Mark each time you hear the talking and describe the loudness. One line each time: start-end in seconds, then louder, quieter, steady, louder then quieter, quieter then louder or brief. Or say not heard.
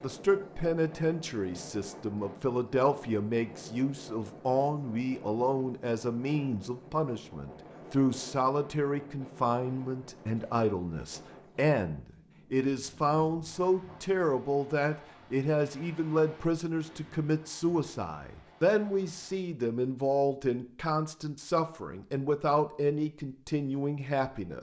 0.0-24.5 steady.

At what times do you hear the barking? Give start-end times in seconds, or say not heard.
not heard.